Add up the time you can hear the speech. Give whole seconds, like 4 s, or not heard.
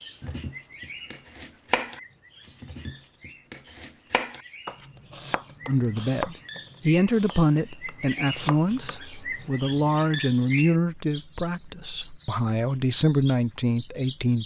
9 s.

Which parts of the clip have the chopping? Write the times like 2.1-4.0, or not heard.
0.2-8.9.